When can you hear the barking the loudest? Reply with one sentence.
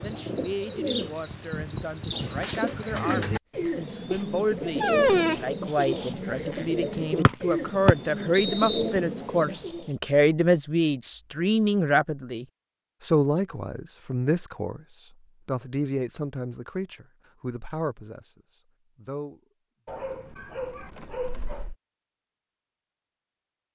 The loudest moment of the barking is at 5 seconds.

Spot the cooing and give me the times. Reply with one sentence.
The cooing can be heard from 0.0 to 9.9 s.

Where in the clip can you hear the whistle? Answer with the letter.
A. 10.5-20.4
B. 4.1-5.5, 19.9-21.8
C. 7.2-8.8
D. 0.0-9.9
C.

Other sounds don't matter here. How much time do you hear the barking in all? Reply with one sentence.
You can hear the barking for 3 seconds altogether.